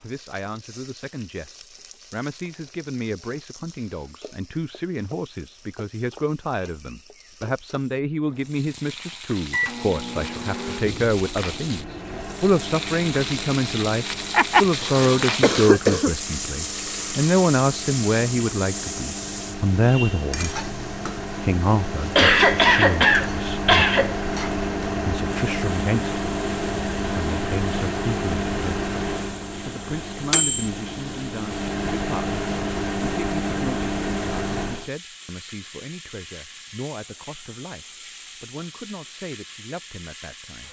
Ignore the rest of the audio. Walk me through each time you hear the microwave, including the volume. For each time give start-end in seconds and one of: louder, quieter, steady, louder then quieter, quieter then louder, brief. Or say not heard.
9.5-34.9 louder.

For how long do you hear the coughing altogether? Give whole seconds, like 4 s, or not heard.
4 s.